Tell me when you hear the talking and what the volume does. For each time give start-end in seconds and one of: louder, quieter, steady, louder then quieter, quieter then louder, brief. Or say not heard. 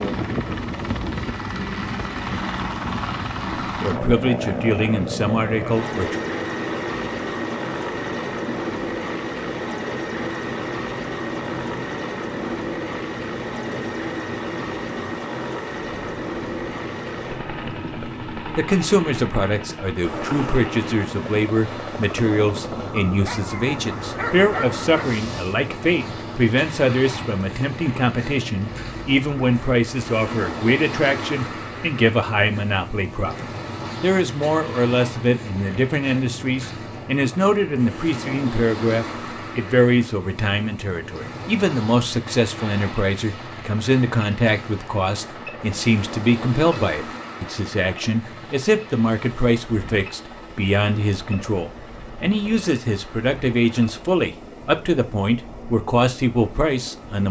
3.6-6.2 brief
18.6-57.2 steady.